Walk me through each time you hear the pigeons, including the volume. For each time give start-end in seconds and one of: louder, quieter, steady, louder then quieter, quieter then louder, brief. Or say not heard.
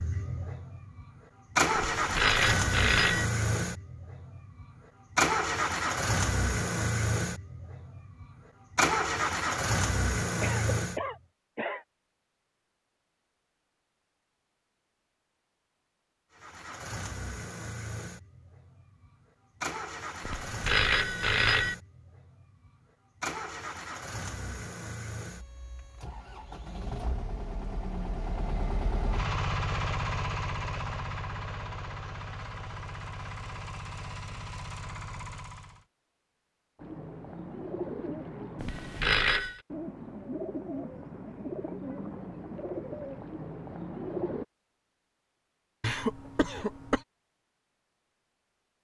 36.8-44.5 steady.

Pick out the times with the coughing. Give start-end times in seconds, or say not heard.
10.4-11.8, 45.8-47.0.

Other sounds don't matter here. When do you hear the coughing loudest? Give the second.
46 s.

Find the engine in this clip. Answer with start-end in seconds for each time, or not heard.
0.0-11.1, 16.3-35.9.